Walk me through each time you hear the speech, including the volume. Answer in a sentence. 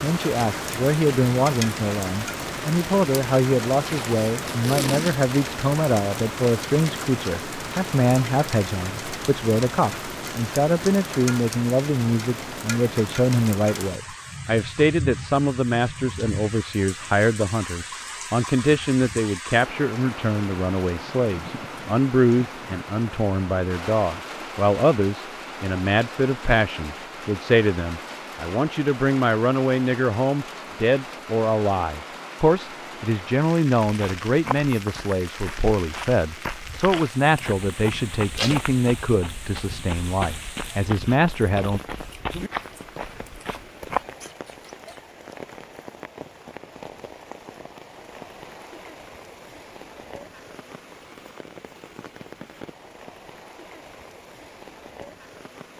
The speech can be heard from 0.0 to 41.8 s, at a steady volume.